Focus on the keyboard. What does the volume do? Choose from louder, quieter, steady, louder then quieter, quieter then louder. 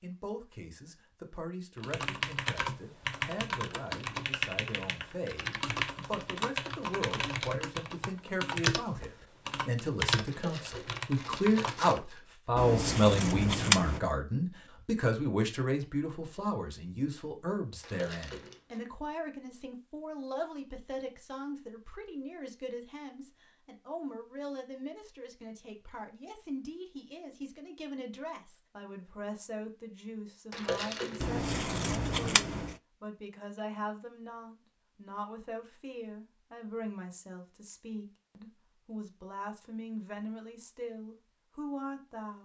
steady.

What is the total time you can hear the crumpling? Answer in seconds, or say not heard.
4 s.